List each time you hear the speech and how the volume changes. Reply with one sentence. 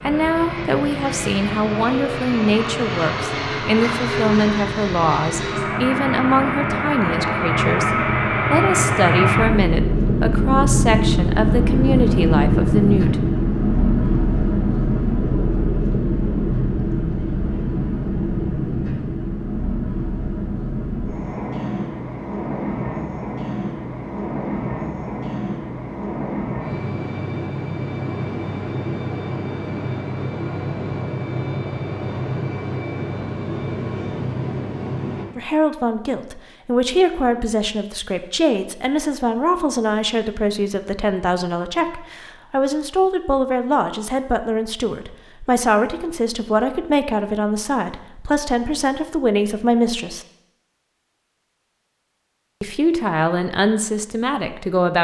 The speech can be heard from 0.0 to 13.2 s, at a steady volume; from 35.4 to 50.2 s, at a steady volume; and briefly from 52.6 to 54.9 s.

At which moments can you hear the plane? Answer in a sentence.
The plane can be heard from 0.0 to 35.2 s.